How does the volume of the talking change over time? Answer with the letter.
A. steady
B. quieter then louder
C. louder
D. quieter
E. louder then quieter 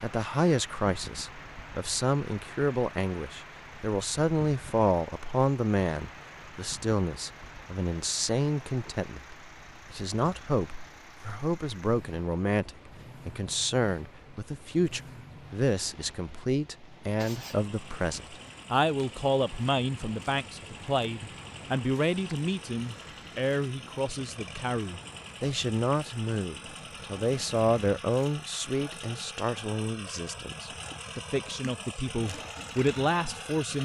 A.